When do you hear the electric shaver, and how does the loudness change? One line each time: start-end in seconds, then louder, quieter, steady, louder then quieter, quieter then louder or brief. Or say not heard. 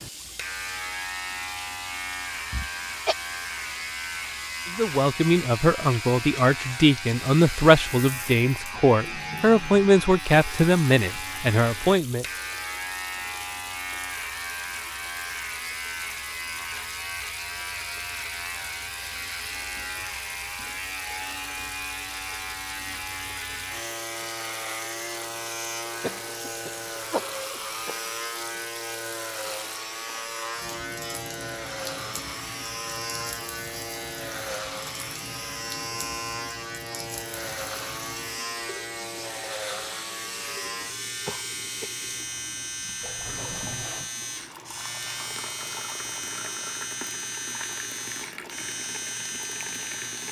0.0-50.2 steady.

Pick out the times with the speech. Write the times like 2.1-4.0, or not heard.
4.7-12.2.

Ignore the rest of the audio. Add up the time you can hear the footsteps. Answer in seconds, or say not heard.
not heard.